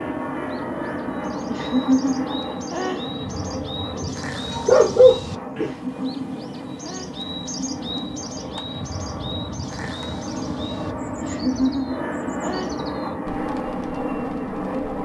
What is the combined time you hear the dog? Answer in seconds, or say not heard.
2 s.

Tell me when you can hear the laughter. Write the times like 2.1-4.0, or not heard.
1.4-3.0, 5.6-7.8, 11.2-12.7.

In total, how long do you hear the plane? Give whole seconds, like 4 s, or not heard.
15 s.